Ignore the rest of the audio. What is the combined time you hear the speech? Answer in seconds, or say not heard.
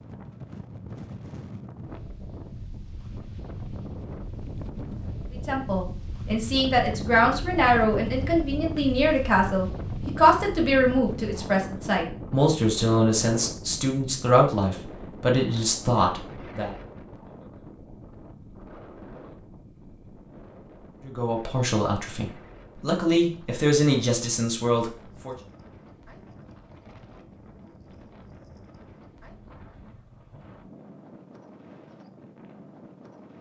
16 s.